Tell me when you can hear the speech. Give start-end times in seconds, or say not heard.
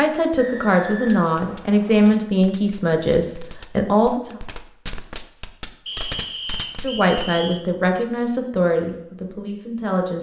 0.0-4.3, 6.8-10.1.